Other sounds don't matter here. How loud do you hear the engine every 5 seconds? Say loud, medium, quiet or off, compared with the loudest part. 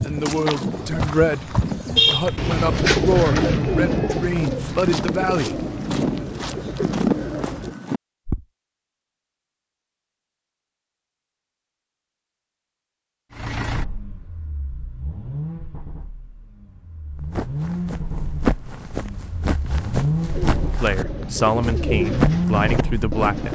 off, off, medium, medium, loud.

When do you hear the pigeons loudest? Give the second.
3 s.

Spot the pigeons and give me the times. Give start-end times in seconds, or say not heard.
0.0-7.8, 20.2-23.4.